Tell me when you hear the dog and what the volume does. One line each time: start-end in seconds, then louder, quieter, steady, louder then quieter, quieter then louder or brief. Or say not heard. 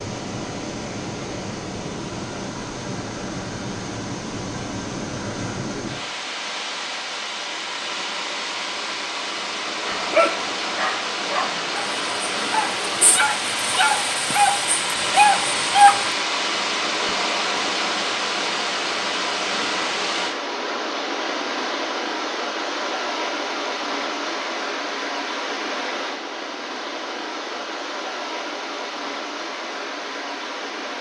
9.8-16.1 louder.